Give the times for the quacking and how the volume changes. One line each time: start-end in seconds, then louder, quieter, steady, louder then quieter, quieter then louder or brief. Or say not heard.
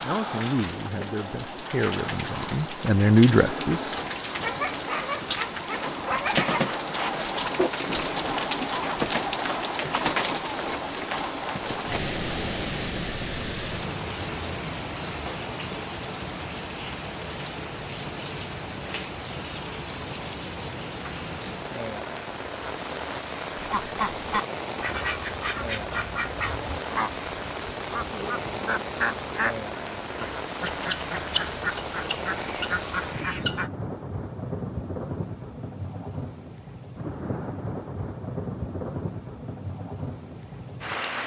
23.6-33.7 steady.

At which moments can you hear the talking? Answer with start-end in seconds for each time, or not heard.
0.0-3.9.